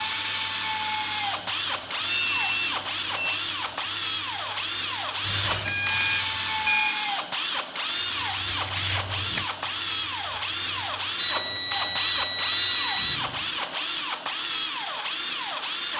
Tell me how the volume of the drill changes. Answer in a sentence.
The loudness of the drill stays about the same.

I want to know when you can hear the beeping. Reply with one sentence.
You can hear the beeping from 2.0 to 3.5 s, from 5.7 to 7.0 s and from 11.2 to 13.2 s.